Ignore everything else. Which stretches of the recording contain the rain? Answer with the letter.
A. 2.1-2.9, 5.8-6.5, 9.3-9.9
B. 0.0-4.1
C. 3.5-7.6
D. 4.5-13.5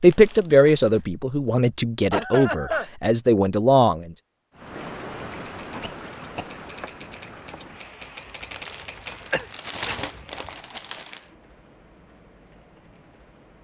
D.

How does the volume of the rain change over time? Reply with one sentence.
The volume of the rain goes down.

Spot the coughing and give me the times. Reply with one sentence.
You can hear the coughing from 2.1 to 2.9 s, from 5.8 to 6.5 s and from 9.3 to 9.9 s.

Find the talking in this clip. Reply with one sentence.
The talking can be heard from 0.0 to 4.1 s.